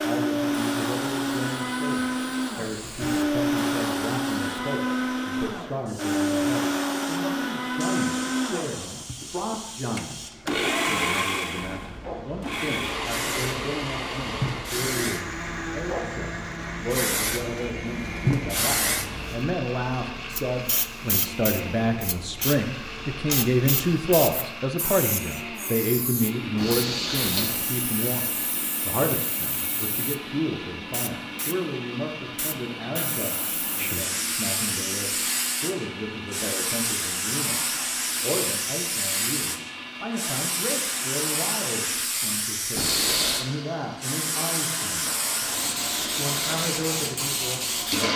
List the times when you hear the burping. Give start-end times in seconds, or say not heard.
9.2-10.7, 26.6-27.6, 42.8-43.5.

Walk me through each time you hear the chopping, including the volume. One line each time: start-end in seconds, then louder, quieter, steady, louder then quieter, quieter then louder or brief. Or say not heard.
not heard.